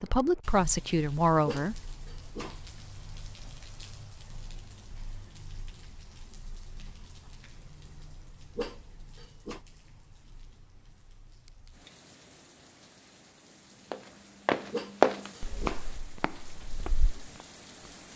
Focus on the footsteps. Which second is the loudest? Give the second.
15 s.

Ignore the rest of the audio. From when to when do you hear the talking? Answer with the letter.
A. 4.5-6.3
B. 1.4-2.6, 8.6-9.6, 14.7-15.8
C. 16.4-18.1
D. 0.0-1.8
D.